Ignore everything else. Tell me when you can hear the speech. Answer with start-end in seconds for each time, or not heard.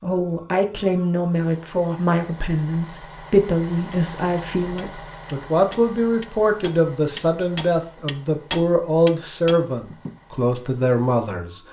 0.0-11.6.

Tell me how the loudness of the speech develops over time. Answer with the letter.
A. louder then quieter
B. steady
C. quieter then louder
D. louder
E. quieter
B.